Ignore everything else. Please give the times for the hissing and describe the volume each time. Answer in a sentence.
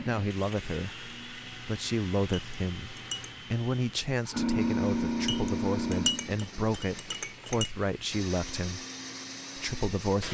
The hissing can be heard from 0.0 to 10.2 s, getting louder then quieter.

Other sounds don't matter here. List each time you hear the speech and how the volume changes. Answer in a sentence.
You can hear the speech from 0.0 to 8.8 s, at a steady volume; and briefly from 9.6 to 10.2 s.